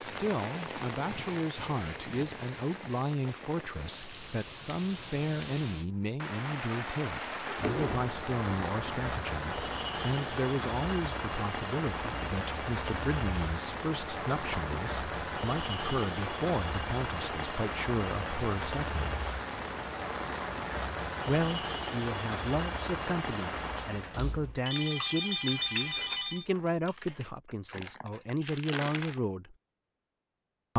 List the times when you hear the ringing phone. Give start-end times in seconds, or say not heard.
23.8-26.4.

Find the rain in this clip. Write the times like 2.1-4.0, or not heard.
0.0-24.2.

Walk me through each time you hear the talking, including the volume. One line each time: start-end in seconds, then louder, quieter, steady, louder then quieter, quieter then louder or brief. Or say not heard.
0.0-19.1 steady
21.2-29.6 steady.